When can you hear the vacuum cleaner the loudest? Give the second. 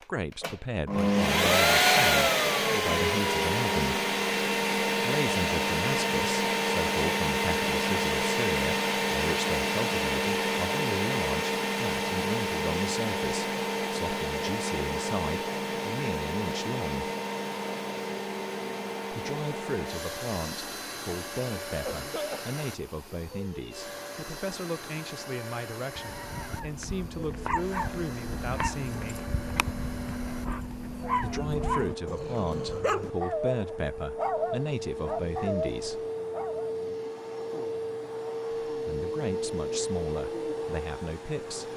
2 s.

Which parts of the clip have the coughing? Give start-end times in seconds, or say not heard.
21.7-22.6.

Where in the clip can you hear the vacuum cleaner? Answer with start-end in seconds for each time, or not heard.
0.0-41.7.